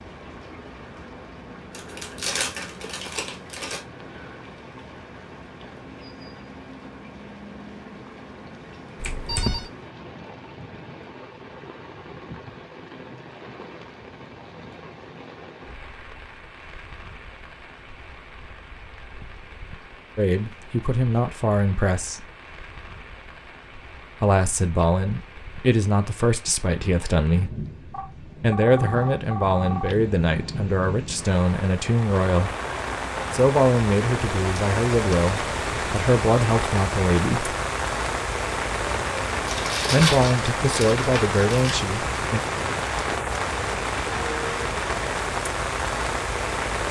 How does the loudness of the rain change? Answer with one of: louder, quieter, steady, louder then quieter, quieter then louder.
louder.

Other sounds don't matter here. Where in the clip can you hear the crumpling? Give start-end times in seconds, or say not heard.
1.7-3.8, 39.5-41.9.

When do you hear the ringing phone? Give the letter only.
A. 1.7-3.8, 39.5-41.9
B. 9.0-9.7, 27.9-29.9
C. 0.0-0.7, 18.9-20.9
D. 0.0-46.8
B.